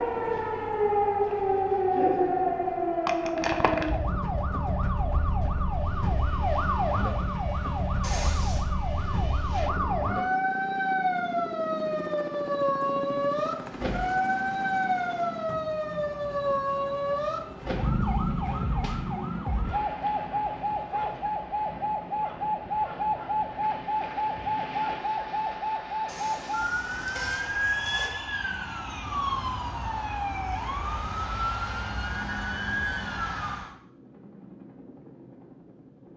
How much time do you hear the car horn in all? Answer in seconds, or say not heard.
3 s.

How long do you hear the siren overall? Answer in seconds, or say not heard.
34 s.